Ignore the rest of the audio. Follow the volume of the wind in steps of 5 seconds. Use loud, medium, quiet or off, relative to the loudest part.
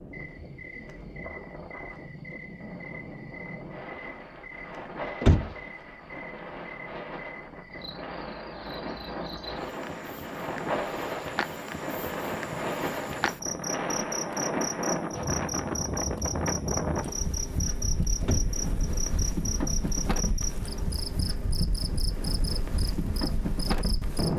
medium, medium, loud, loud, loud.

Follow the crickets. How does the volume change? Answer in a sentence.
The volume of the crickets goes up.